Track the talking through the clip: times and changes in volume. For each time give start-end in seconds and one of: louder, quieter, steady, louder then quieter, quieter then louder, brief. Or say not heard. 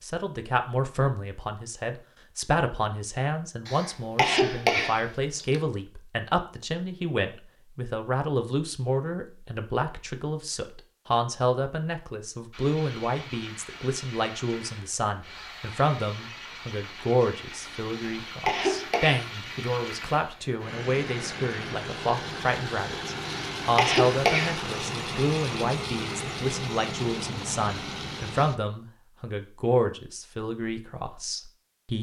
0.0-31.9 steady.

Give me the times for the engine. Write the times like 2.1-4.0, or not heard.
12.5-28.6.